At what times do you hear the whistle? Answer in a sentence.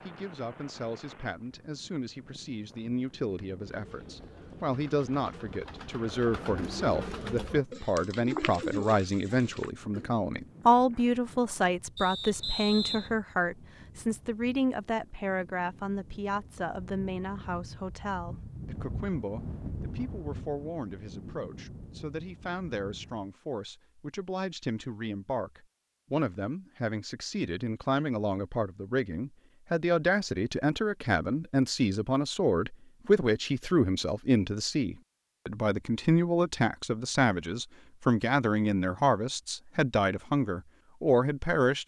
You can hear the whistle from 11.9 to 13.2 s.